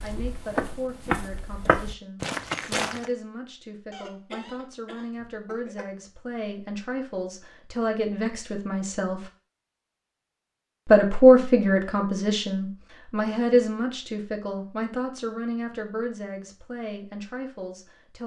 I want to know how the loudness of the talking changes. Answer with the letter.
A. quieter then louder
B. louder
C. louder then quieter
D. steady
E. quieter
C.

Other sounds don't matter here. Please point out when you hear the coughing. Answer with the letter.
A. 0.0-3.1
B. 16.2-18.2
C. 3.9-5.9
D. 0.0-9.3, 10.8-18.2
C.